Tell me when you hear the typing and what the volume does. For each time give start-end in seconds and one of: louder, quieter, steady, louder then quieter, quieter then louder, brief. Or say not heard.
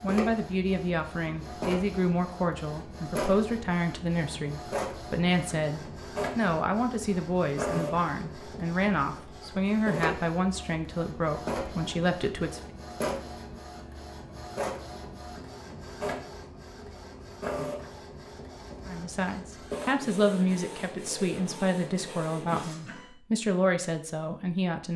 not heard.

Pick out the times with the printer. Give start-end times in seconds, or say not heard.
0.0-23.1.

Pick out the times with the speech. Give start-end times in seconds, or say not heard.
0.0-12.6, 18.9-24.9.